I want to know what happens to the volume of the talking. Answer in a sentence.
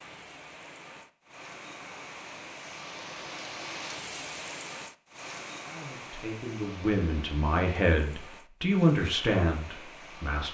The volume of the talking goes up, then down.